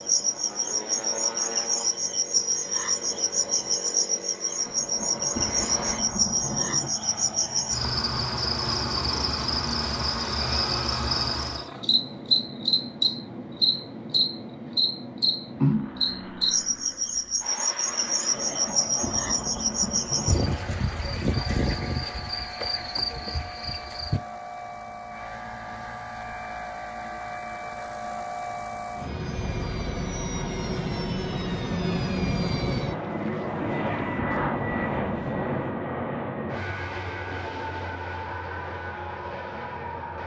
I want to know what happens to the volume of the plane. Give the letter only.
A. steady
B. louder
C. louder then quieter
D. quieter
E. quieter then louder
B.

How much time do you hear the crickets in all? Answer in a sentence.
The crickets can be heard for 24 seconds in total.